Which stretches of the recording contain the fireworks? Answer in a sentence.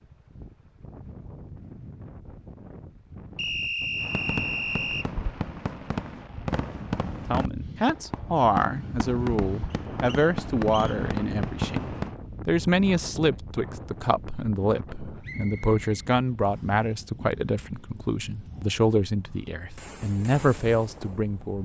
The fireworks can be heard from 4.0 to 12.2 s and from 19.8 to 21.4 s.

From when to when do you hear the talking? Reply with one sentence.
You can hear the talking from 7.2 to 11.8 s and from 12.4 to 21.6 s.